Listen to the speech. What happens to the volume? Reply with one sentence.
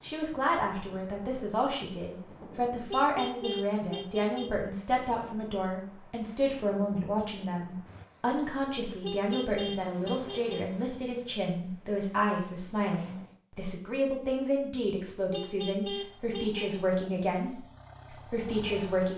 The volume of the speech stays about the same.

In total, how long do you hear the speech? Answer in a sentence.
The speech can be heard for 19 seconds in total.